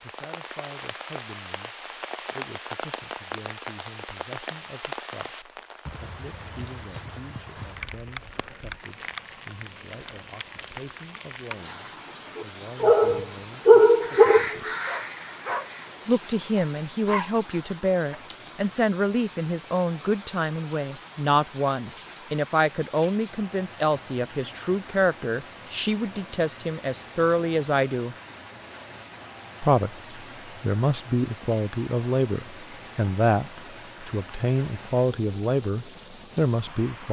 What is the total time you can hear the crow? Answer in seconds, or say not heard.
2 s.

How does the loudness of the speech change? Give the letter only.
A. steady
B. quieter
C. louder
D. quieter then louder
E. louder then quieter
C.